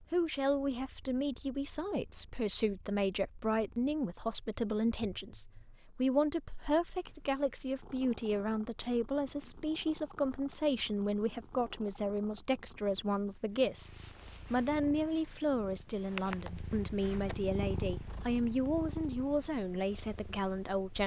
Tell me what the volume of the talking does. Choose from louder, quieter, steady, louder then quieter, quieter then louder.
steady.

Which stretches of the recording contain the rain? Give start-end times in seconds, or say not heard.
not heard.